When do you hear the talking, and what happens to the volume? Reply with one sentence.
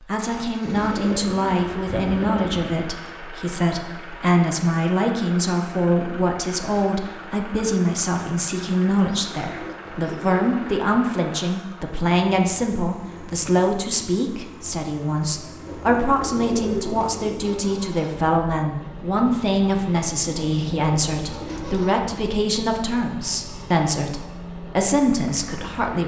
The talking can be heard from 0.1 to 26.0 s, at a steady volume.